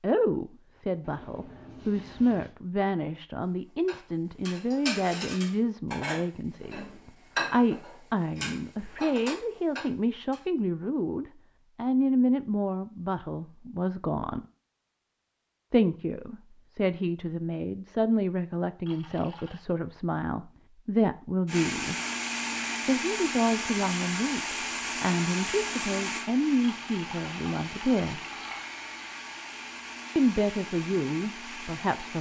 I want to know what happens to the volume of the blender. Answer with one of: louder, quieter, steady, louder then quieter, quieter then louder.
quieter.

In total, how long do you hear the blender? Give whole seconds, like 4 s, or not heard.
11 s.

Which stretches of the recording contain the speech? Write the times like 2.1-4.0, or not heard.
0.0-14.4, 15.7-21.9, 22.9-28.2, 30.1-32.1.